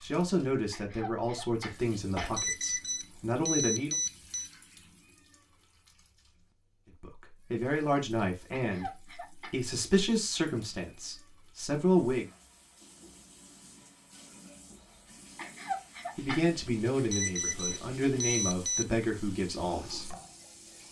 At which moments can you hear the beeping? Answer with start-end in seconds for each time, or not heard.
1.9-4.5, 16.6-18.9.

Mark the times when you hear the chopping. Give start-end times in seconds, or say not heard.
not heard.